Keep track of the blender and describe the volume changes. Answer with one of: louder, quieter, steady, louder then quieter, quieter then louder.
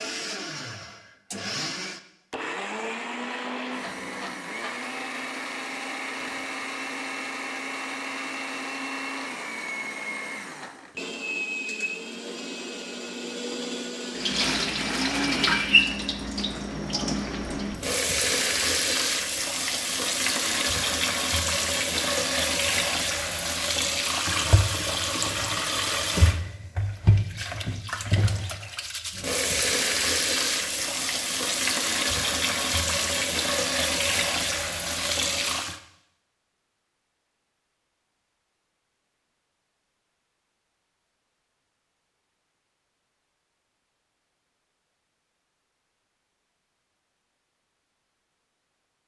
steady.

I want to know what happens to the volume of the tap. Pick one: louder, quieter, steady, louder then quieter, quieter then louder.
steady.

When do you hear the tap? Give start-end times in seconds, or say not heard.
14.2-35.8.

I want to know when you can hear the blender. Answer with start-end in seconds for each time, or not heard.
0.0-15.8.